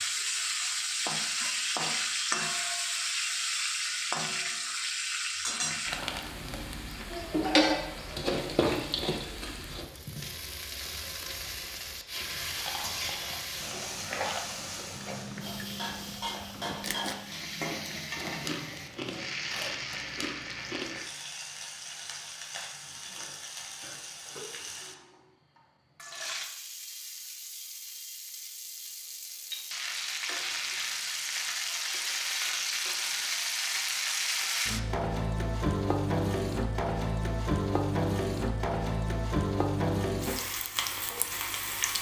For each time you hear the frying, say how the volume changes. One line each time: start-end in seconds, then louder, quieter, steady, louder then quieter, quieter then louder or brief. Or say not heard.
0.0-41.9 quieter then louder.